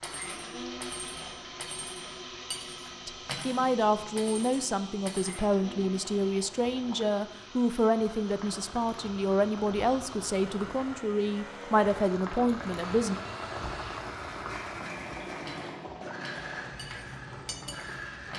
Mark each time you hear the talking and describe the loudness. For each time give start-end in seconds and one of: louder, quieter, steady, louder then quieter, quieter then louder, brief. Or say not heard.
3.0-13.2 steady.